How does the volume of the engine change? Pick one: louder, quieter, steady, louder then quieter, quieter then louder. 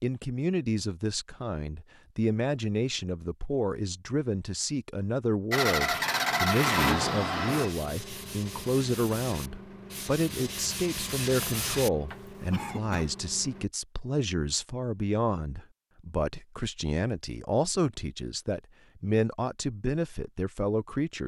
quieter.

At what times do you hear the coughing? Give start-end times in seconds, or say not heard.
12.5-13.2.